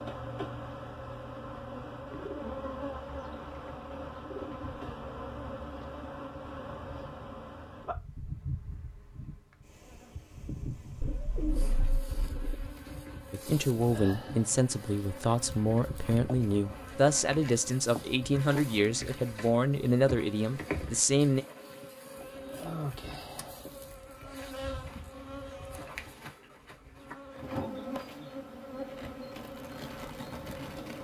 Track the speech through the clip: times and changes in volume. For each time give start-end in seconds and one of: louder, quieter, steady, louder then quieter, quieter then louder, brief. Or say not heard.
13.3-21.4 steady.